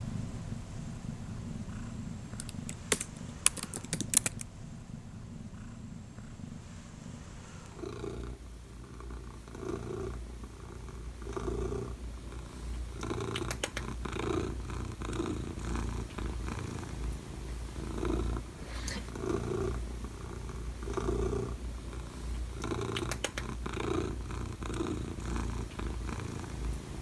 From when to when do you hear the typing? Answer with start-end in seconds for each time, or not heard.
2.4-4.5.